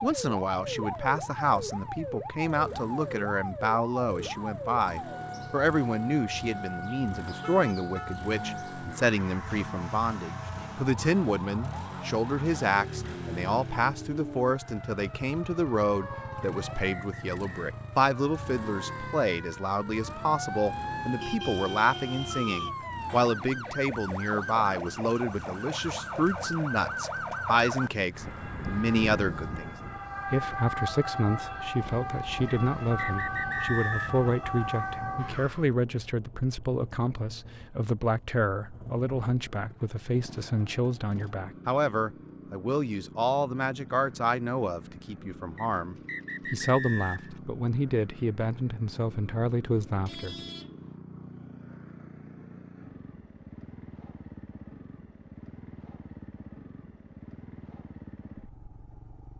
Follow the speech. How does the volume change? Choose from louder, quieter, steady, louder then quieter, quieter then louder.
steady.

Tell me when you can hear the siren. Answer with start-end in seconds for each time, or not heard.
0.0-35.8.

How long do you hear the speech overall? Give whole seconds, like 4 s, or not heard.
50 s.